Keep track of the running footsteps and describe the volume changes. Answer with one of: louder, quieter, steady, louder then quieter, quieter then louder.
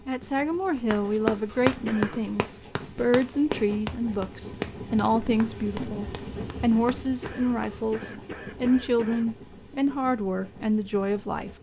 quieter.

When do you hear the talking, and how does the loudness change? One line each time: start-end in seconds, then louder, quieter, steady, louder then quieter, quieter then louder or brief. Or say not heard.
0.1-11.5 steady.